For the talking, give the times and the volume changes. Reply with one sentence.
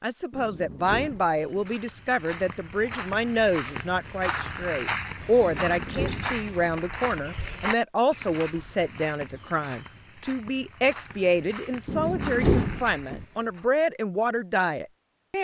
The talking can be heard from 0.0 to 15.3 s, at a steady volume.